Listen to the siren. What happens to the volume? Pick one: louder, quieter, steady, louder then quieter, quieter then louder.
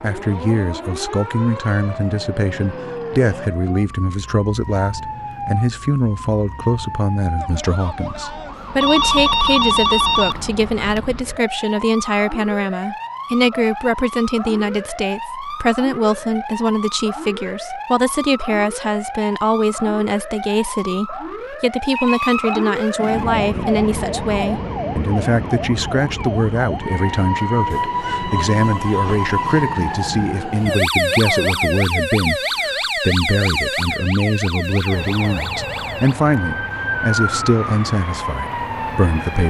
louder.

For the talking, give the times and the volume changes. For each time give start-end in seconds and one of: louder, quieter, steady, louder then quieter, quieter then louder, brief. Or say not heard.
0.0-39.4 steady.